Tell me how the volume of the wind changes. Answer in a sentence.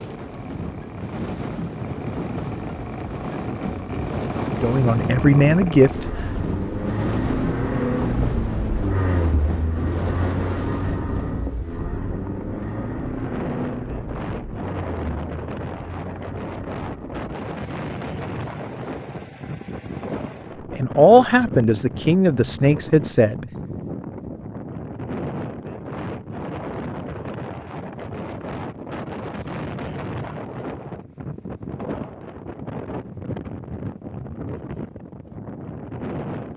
The loudness of the wind stays about the same.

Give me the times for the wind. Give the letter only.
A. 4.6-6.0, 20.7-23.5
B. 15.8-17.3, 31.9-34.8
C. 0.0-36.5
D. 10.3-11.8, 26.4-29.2
C.